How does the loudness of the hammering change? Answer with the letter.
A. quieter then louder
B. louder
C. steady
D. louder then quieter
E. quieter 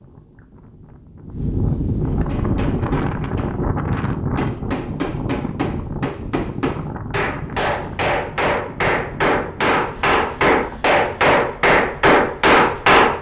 B.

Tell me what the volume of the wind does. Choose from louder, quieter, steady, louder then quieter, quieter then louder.
quieter.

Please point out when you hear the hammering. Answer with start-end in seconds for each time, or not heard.
2.1-13.1.